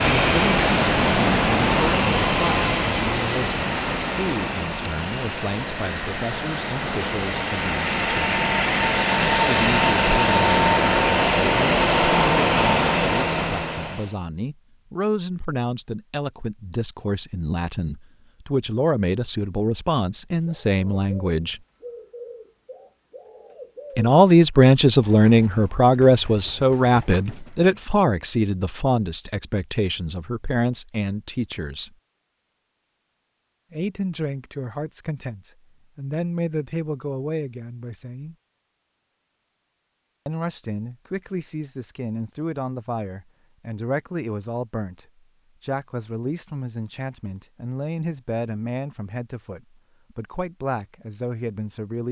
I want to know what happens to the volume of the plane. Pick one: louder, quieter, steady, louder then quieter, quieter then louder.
quieter then louder.